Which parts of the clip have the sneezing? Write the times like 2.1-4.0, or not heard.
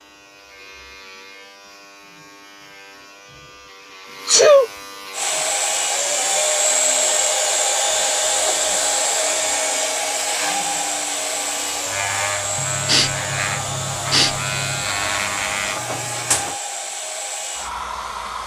4.2-4.7, 12.6-14.8.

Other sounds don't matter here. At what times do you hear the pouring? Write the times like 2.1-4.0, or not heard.
not heard.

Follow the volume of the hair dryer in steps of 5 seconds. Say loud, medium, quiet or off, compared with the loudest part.
off, loud, medium, medium.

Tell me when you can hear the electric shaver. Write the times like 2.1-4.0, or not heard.
0.0-16.6.